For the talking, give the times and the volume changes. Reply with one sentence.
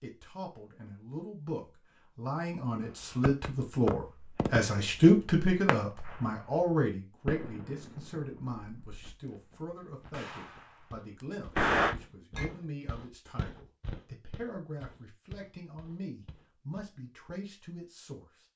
The talking can be heard from 0.0 to 18.4 s, getting louder then quieter.